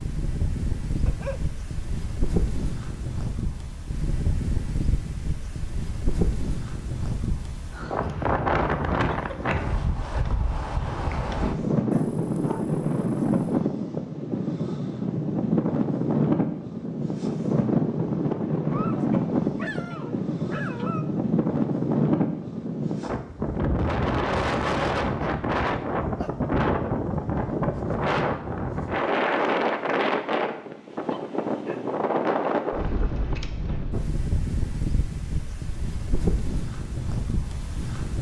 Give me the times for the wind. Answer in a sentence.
You can hear the wind from 0.0 to 38.1 s.